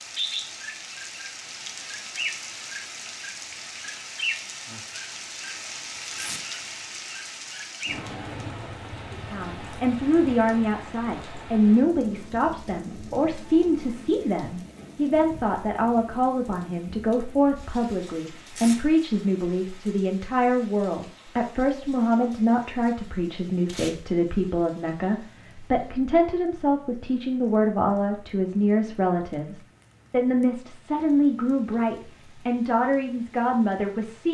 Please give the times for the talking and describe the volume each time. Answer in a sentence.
The talking can be heard from 9.1 to 34.2 s, at a steady volume.